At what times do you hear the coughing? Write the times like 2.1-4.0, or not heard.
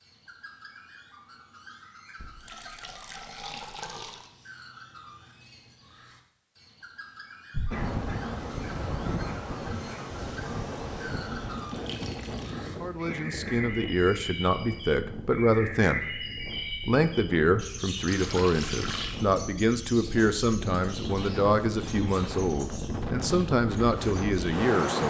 7.7-8.2, 13.1-13.7.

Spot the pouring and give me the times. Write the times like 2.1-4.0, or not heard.
2.1-4.3, 11.6-12.6, 18.1-19.2.